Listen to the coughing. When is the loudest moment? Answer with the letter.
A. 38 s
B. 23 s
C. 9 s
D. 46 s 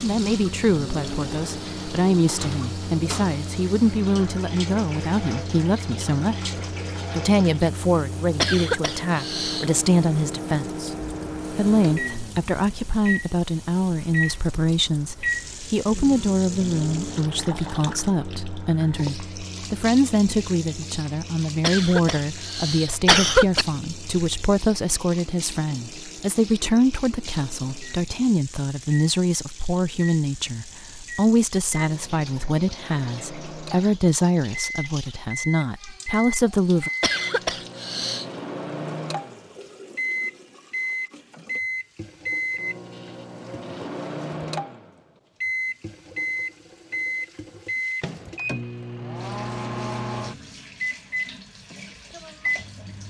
B.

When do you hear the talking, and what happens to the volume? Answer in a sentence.
You can hear the talking from 0.0 to 36.9 s, at a steady volume.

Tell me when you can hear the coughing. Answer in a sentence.
The coughing can be heard from 8.4 to 9.7 s, from 21.6 to 23.6 s and from 37.0 to 38.2 s.